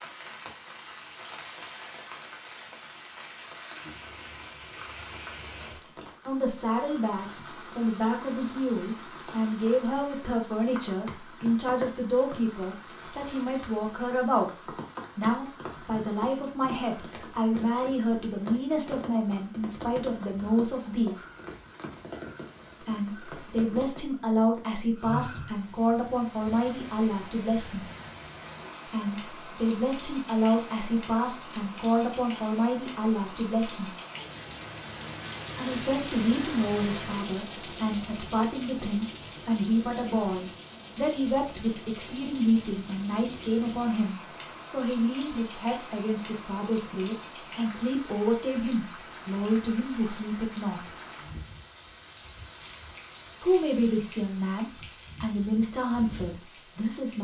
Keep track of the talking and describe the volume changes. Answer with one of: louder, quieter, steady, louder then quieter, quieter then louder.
steady.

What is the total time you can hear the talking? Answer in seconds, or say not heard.
43 s.